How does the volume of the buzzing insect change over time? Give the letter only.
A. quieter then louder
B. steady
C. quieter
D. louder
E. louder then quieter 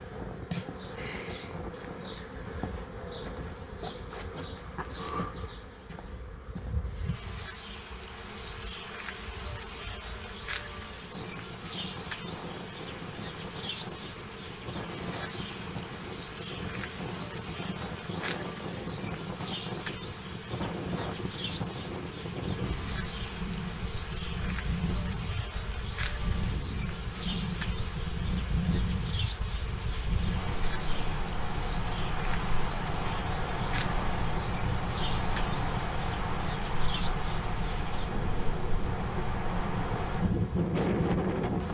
B.